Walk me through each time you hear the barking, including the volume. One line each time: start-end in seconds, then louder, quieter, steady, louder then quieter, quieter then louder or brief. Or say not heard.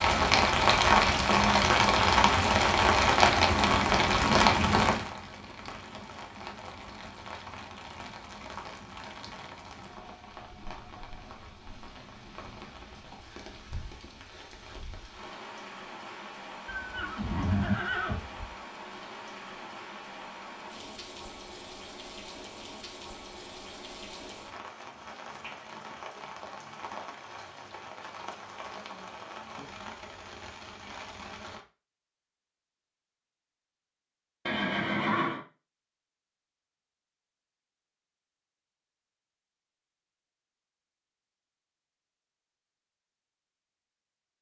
not heard.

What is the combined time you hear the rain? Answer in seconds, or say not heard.
32 s.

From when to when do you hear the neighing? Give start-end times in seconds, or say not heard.
16.6-18.6, 34.5-35.5.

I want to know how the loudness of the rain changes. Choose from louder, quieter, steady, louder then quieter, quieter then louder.
quieter.